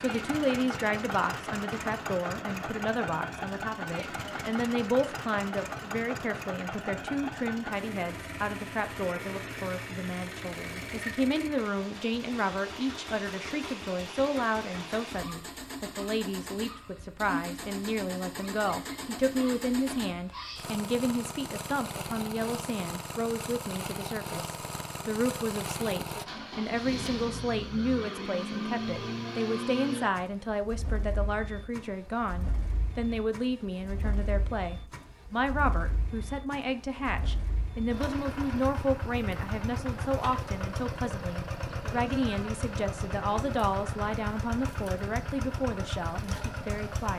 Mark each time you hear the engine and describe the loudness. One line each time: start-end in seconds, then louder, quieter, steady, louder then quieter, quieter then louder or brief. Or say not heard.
0.0-47.1 steady.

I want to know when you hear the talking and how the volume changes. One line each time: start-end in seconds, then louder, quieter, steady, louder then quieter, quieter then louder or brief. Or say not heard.
0.0-47.1 steady.